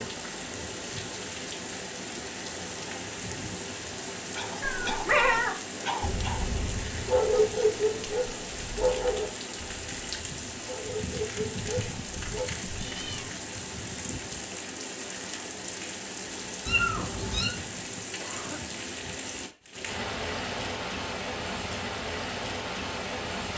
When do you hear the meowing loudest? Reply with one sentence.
The loudest moment of the meowing is at 5 seconds.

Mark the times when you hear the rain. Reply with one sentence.
The rain can be heard from 0.0 to 23.5 s.